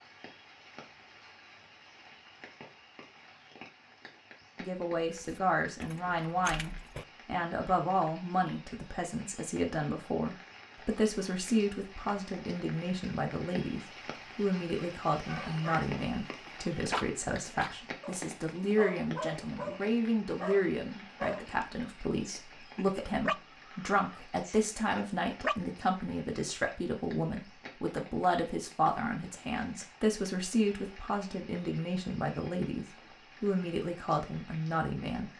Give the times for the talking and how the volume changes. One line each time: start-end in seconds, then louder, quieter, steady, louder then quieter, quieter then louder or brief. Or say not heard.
4.6-35.3 steady.